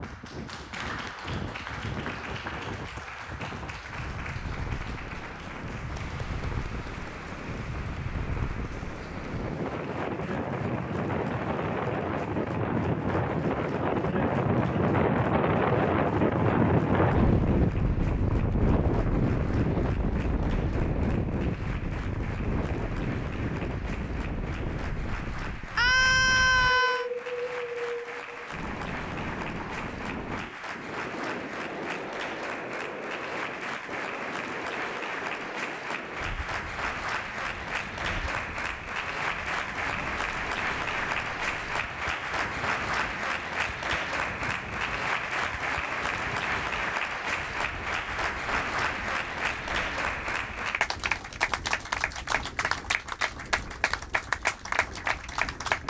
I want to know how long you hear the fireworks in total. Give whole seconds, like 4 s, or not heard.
not heard.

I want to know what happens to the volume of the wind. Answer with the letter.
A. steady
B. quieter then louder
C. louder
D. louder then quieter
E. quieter
D.